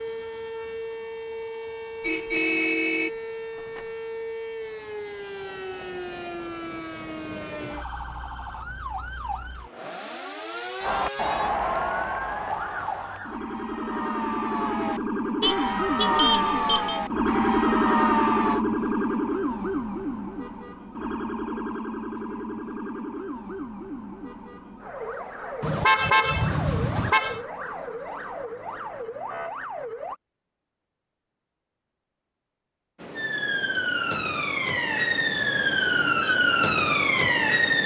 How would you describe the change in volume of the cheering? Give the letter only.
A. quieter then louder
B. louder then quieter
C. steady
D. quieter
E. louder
A.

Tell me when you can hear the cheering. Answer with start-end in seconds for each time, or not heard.
10.8-18.6.